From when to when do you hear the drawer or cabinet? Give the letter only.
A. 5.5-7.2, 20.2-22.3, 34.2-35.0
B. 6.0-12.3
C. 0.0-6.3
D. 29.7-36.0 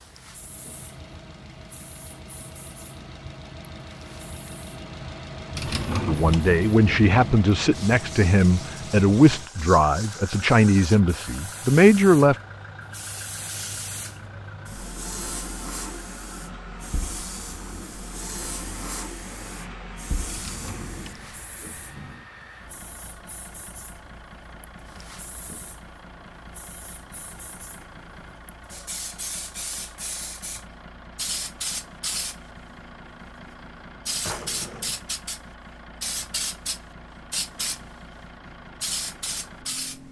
A.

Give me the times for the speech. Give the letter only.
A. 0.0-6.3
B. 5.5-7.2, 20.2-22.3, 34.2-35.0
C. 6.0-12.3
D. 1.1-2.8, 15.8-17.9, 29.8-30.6
C.